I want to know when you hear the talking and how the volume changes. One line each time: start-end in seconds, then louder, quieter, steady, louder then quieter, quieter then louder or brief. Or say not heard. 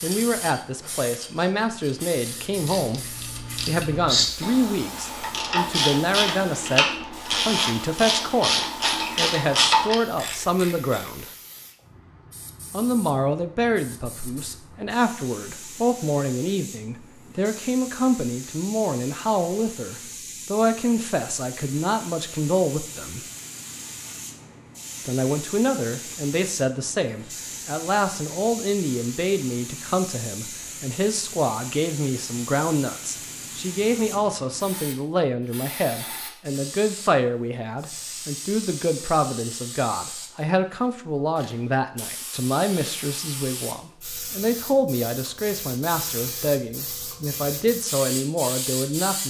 0.0-11.2 steady
12.7-23.2 steady
25.1-49.2 steady.